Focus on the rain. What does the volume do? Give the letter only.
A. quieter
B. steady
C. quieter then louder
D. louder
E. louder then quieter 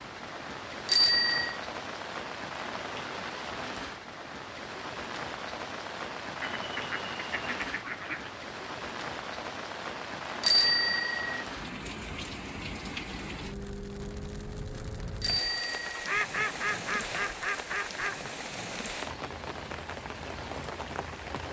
B.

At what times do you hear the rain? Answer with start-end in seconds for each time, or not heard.
0.0-21.4.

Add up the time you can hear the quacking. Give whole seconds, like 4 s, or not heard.
4 s.